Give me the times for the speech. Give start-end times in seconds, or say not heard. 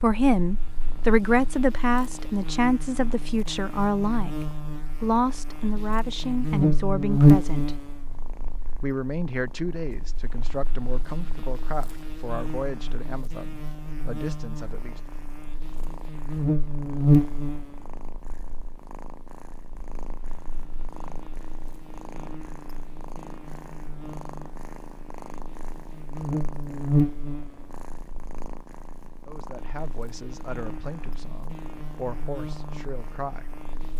0.0-7.8, 8.8-15.0, 29.2-33.5.